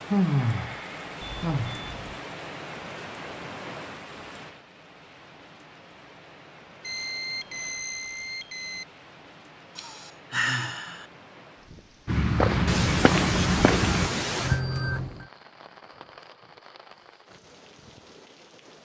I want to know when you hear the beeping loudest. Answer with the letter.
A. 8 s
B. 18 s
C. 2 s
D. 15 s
D.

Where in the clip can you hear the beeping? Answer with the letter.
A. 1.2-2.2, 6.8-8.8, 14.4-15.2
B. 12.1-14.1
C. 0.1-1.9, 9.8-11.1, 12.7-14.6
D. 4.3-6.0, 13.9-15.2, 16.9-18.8
A.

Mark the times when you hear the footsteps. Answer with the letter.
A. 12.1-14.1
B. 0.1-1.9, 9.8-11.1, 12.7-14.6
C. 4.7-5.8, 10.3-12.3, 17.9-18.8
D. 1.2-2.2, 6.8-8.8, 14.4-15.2
A.